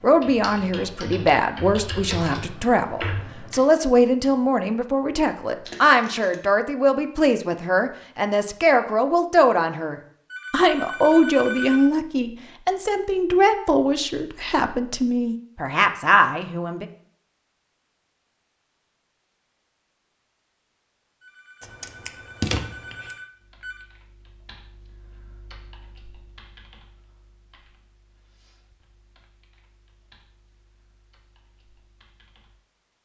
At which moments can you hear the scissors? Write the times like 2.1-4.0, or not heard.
5.7-6.4, 21.6-23.1.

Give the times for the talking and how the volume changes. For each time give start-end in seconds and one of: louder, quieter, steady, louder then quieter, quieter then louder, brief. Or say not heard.
0.0-16.9 steady.